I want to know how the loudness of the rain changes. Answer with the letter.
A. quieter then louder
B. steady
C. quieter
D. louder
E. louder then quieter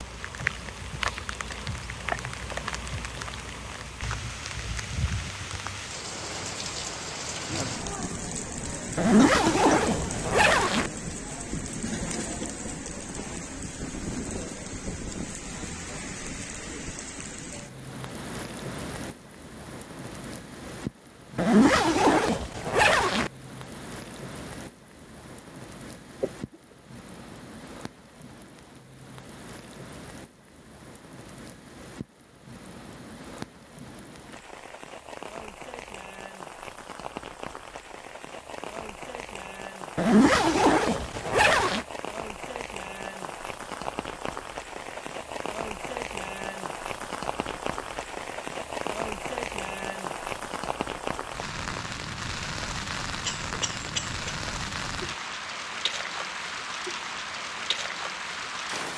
A.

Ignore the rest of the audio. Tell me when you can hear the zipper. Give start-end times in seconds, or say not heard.
8.9-10.9, 21.4-23.3, 40.0-41.9.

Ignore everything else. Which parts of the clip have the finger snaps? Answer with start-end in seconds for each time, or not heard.
not heard.